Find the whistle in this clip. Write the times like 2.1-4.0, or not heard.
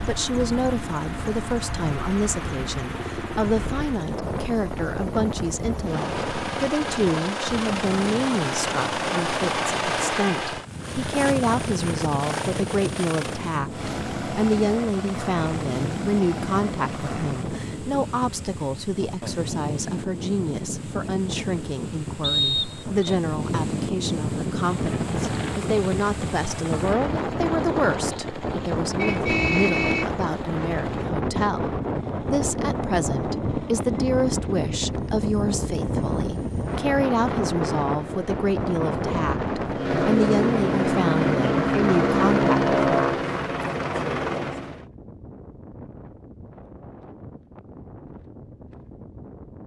22.2-23.1.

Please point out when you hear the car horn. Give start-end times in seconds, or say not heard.
28.9-30.1.